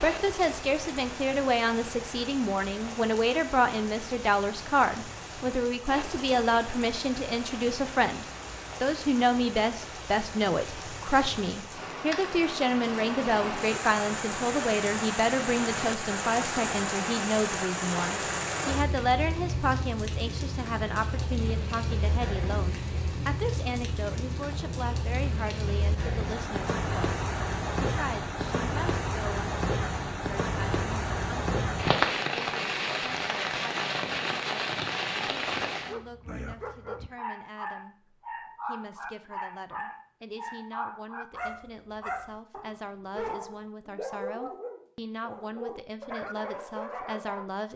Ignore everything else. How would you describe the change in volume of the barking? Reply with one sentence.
The loudness of the barking stays about the same.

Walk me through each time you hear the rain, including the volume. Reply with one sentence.
The rain can be heard from 0.0 to 36.0 s, getting louder.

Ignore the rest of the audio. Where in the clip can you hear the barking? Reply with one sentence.
You can hear the barking from 35.7 to 47.5 s.